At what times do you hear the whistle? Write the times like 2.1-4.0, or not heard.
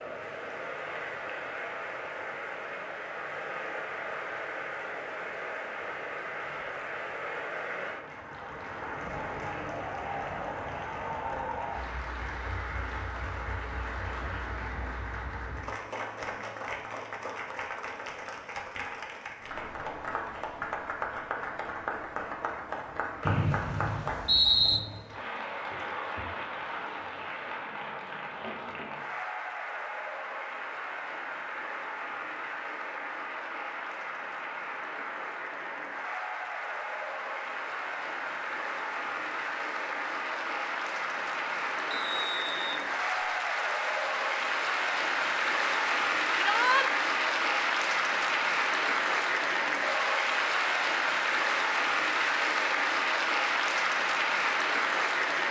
23.2-24.8, 41.9-43.3.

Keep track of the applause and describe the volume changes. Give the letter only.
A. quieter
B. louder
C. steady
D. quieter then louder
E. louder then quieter
B.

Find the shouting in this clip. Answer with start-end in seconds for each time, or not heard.
46.4-46.9.